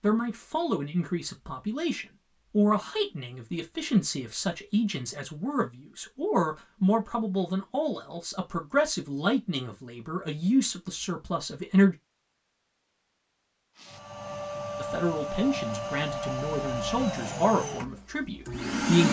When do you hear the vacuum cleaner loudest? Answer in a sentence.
The loudest moment of the vacuum cleaner is at 19 seconds.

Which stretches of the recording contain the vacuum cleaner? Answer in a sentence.
The vacuum cleaner can be heard from 13.8 to 19.0 s.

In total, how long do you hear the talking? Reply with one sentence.
The talking can be heard for 16 seconds in total.